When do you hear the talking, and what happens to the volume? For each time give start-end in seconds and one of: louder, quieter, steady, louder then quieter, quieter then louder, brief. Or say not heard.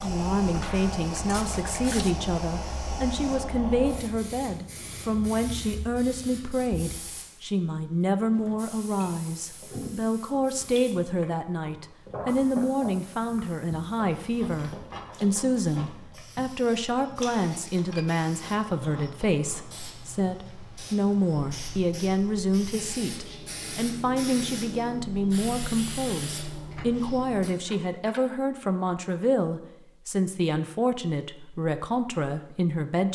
0.0-33.1 steady.